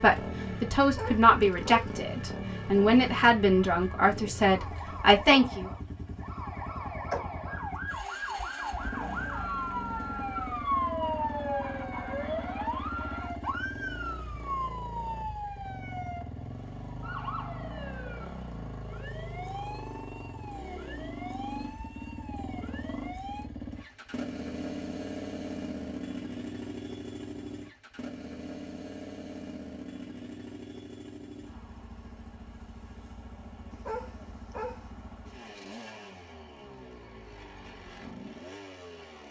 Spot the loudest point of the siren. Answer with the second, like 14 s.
11 s.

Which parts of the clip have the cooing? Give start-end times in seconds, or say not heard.
not heard.